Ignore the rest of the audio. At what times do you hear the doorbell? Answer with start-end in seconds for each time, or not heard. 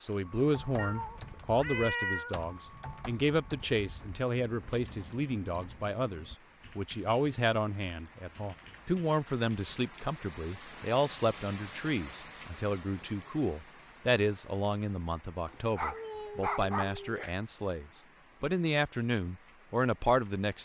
not heard.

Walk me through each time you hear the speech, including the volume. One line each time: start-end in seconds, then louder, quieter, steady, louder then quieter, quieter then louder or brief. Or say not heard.
0.0-20.6 steady.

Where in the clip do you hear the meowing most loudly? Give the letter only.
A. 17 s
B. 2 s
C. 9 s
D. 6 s
B.